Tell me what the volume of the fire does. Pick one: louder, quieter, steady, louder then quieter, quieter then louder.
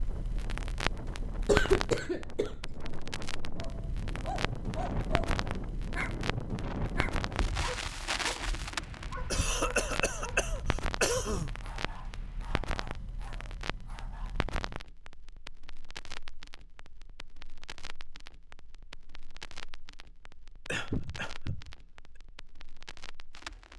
quieter.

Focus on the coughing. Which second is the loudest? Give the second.
2 s.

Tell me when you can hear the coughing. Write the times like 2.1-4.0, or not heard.
1.4-2.5, 9.3-11.6, 20.6-21.8.